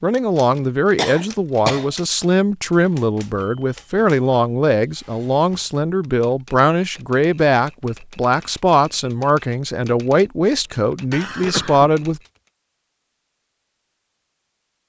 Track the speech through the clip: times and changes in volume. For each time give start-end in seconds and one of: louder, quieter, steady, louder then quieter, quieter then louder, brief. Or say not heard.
0.0-12.2 steady.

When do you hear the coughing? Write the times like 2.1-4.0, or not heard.
0.9-1.9, 11.1-11.9.